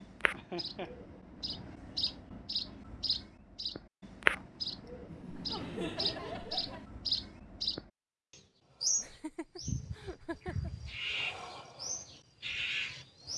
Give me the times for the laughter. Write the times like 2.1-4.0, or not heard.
0.3-0.9, 5.0-6.8, 8.9-10.7.